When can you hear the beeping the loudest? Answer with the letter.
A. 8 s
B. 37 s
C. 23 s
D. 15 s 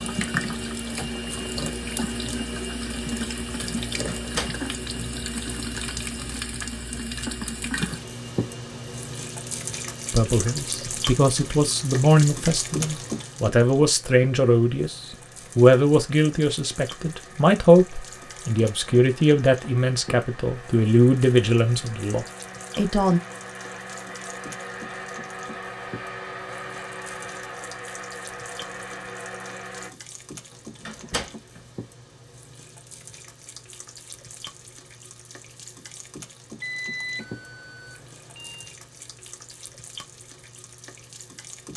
B.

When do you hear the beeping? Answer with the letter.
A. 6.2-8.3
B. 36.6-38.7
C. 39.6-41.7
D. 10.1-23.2
B.